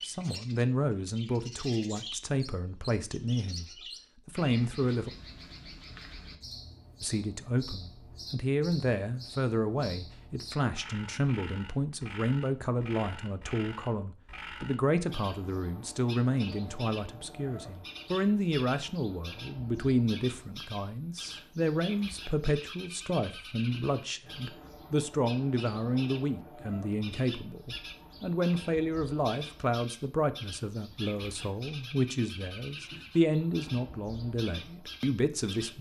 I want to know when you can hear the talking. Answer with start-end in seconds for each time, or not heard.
0.1-3.6, 4.2-5.1, 7.0-35.7.